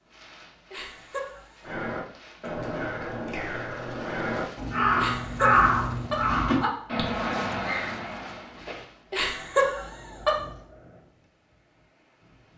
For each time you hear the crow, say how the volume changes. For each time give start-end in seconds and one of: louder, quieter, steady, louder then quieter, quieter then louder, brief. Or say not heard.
1.6-8.8 louder then quieter.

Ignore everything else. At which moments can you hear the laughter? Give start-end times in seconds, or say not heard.
0.7-1.4, 5.0-6.7, 9.1-10.3.